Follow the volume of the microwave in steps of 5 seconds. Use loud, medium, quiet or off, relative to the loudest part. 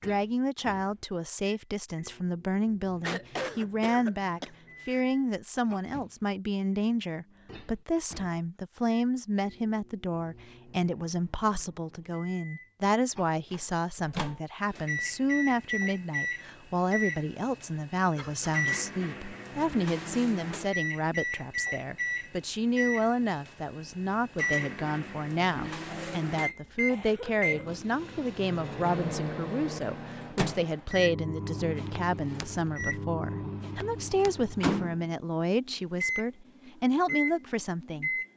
quiet, quiet, medium, loud, loud, loud, loud, loud.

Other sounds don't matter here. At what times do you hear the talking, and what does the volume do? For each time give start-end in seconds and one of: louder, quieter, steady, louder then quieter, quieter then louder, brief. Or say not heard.
0.0-38.1 steady.